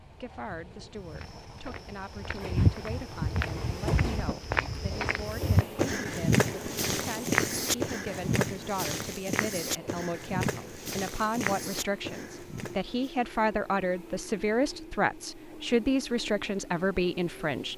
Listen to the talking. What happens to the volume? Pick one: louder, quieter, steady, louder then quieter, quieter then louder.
louder.